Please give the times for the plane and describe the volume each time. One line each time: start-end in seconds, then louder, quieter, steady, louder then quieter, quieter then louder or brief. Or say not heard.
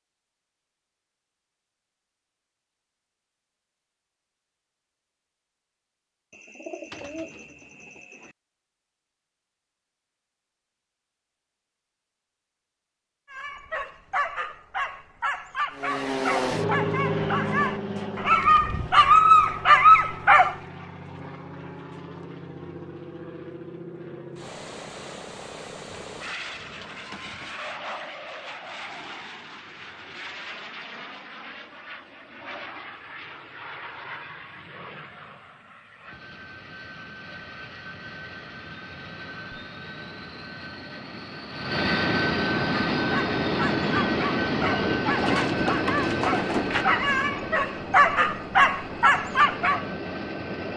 15.7-50.7 quieter then louder.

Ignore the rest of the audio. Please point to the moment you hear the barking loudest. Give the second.
20 s.